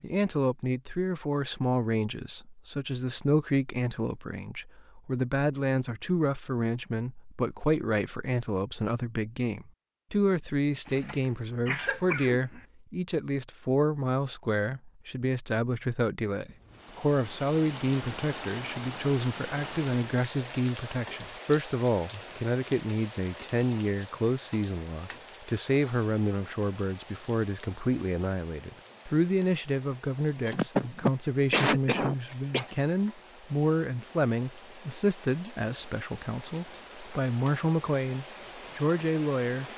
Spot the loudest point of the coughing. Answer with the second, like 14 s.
32 s.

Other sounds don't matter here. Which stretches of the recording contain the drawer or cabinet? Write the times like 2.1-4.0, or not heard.
not heard.